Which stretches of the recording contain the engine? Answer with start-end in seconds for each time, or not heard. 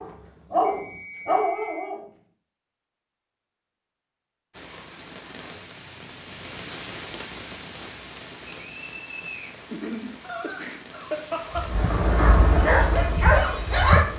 11.6-14.1.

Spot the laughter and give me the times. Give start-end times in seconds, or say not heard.
9.7-11.7.